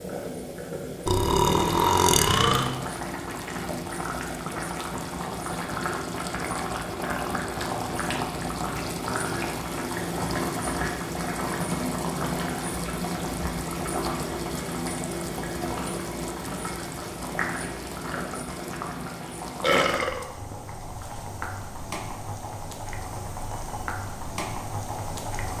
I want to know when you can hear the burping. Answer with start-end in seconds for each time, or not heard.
1.1-2.8, 18.6-20.2.